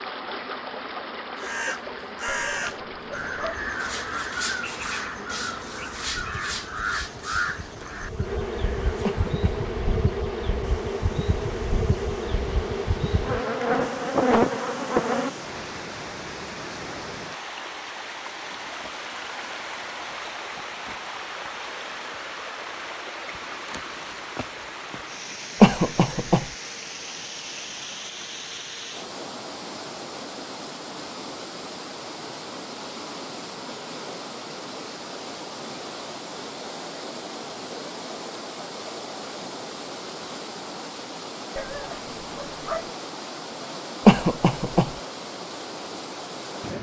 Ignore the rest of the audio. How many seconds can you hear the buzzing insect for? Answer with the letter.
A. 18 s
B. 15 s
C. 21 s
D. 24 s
B.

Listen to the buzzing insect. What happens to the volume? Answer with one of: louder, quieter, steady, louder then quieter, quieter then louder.
louder.